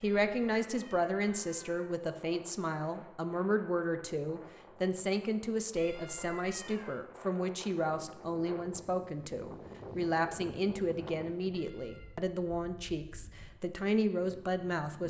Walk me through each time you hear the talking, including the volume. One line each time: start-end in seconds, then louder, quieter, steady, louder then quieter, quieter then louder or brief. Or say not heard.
0.0-15.0 steady.